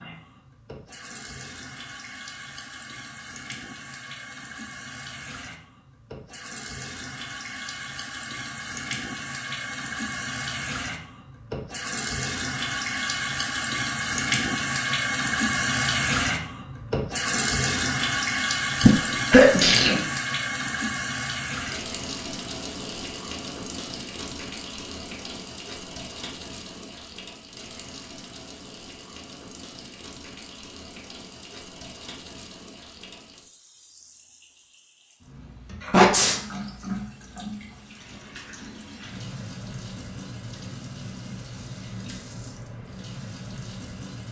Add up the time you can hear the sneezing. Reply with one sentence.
The sneezing can be heard for 2 seconds in total.